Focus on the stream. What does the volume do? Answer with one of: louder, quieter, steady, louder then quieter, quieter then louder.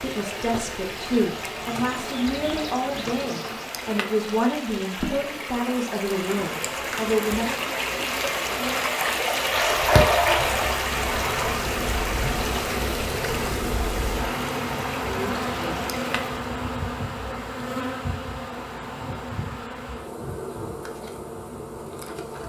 louder then quieter.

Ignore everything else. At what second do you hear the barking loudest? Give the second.
10 s.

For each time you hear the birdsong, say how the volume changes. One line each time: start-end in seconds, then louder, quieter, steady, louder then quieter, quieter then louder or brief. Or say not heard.
not heard.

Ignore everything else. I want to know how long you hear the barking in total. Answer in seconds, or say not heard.
2 s.